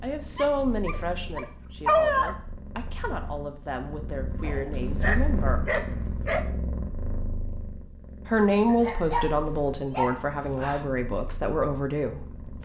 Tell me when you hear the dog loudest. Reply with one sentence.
The loudest moment of the dog is at 2 seconds.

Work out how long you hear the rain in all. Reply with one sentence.
The rain can't be heard in this clip.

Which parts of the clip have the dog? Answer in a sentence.
The dog can be heard from 0.3 to 2.4 s, from 4.4 to 6.5 s and from 8.7 to 10.8 s.